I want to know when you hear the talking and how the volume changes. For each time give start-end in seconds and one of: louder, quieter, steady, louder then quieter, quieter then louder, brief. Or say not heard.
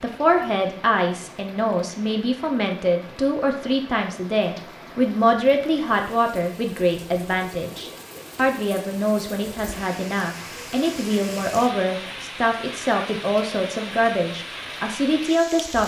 0.0-15.8 steady.